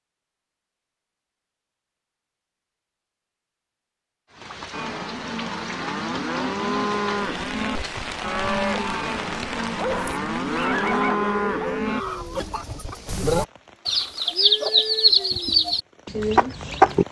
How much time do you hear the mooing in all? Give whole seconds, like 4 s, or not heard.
7 s.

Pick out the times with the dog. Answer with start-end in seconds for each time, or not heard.
9.6-11.8.